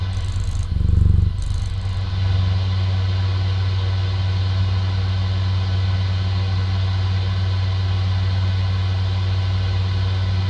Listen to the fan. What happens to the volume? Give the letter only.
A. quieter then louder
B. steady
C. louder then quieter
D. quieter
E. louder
E.